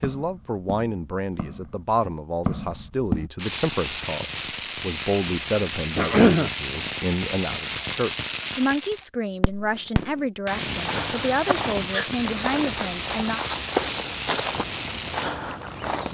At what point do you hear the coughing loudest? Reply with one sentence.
The loudest moment of the coughing is at 6 seconds.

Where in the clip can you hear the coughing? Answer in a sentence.
You can hear the coughing from 6.0 to 6.5 s and from 11.4 to 12.1 s.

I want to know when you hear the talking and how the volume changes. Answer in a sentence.
The talking can be heard from 0.0 to 13.4 s, at a steady volume.